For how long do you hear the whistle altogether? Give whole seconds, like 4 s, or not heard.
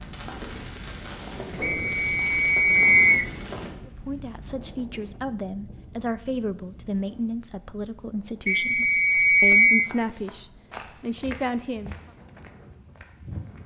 3 s.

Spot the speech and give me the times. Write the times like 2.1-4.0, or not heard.
3.9-12.1.